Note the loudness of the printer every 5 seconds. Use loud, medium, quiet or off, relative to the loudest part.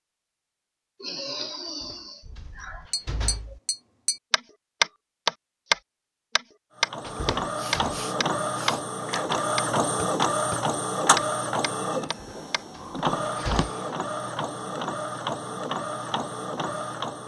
off, loud, loud, loud.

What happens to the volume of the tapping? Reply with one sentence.
The volume of the tapping goes up, then down.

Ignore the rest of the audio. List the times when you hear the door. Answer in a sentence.
You can hear the door from 1.6 to 3.6 s, from 7.0 to 8.0 s and from 12.1 to 13.7 s.